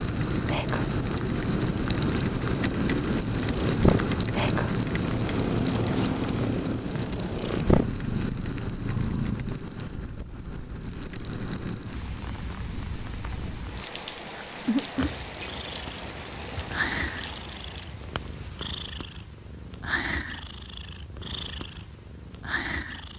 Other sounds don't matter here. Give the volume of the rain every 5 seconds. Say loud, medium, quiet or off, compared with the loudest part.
loud, medium, medium, medium, off.